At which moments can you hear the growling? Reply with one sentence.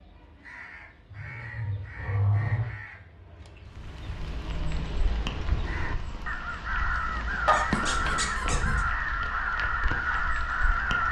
The growling can be heard from 1.1 to 2.8 s and from 7.5 to 8.8 s.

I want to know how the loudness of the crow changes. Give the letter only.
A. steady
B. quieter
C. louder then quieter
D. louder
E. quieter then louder
D.